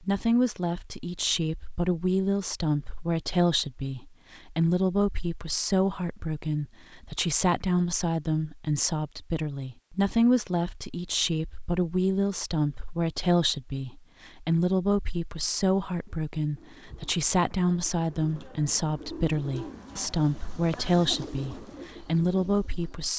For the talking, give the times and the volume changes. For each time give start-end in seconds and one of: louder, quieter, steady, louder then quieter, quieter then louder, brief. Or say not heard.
0.0-23.1 steady.